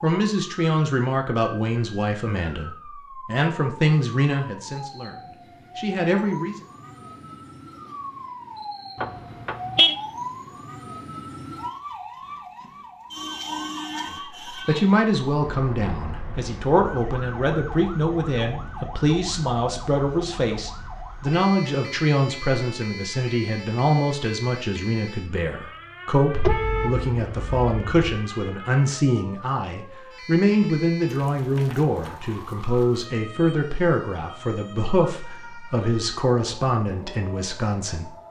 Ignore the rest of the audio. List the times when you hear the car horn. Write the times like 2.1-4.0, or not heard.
9.0-9.9, 26.3-28.1.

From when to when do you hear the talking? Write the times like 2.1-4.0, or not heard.
0.0-6.6, 14.1-38.1.